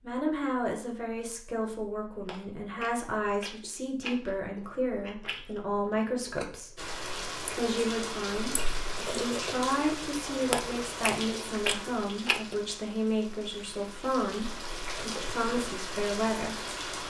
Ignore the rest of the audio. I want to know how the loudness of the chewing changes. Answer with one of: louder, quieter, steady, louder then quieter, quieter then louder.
louder.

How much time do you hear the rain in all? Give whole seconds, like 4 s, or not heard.
10 s.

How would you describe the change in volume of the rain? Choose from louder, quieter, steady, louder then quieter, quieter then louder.
quieter then louder.